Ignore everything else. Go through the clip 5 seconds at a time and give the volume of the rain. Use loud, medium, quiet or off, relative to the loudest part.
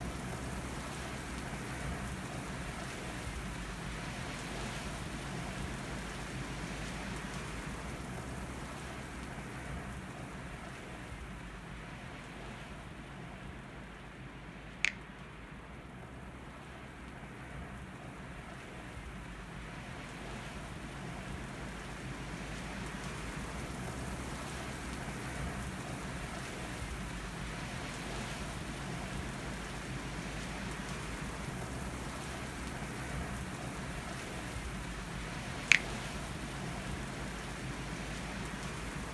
loud, loud, medium, medium, loud, loud, loud, loud.